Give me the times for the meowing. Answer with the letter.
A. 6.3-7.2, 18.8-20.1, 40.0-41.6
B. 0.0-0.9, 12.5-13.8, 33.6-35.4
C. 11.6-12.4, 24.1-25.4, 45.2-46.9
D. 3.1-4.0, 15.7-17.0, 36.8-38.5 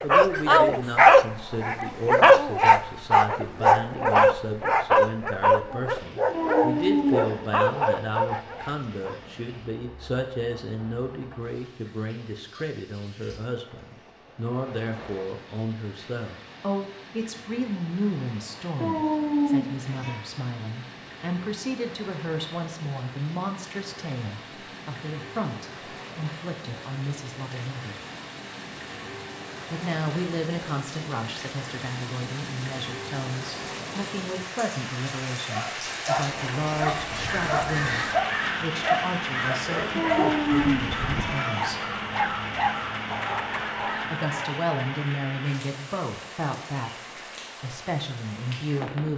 A.